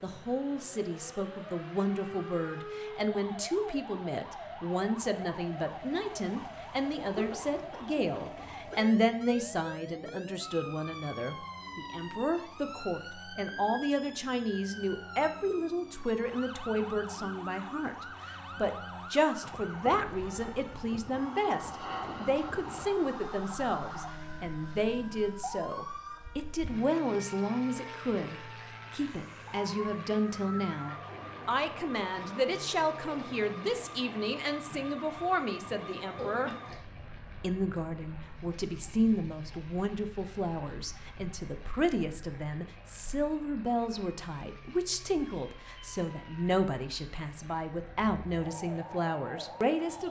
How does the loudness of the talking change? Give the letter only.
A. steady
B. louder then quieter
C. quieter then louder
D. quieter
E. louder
A.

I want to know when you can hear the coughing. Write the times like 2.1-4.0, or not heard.
7.2-8.9, 36.1-36.8.